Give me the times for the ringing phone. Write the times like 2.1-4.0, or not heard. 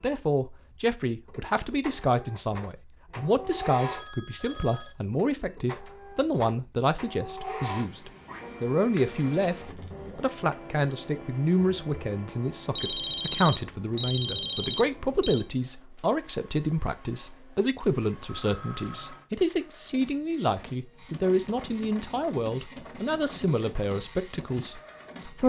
3.6-5.0, 12.8-15.4, 18.2-19.3.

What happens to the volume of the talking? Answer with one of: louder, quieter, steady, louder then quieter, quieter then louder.
steady.